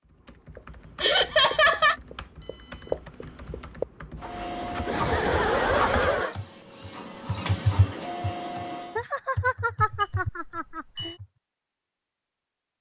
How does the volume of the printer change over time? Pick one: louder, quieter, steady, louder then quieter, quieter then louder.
quieter then louder.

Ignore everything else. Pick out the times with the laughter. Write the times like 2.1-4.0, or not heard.
1.0-1.9, 4.8-6.3, 8.9-11.2.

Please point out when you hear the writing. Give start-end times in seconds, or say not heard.
0.6-6.2.